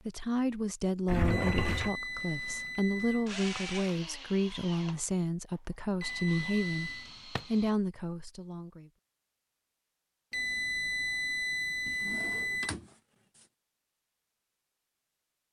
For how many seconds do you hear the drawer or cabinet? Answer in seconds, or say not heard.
2 s.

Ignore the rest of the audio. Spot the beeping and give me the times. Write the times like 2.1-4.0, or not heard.
1.3-3.3, 6.0-7.1, 10.3-12.8.